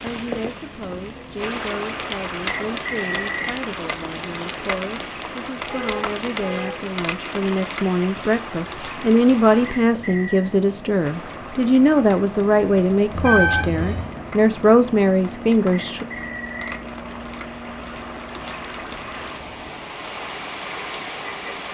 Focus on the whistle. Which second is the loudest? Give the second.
3 s.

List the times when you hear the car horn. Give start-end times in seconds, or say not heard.
5.7-6.8, 13.1-14.1.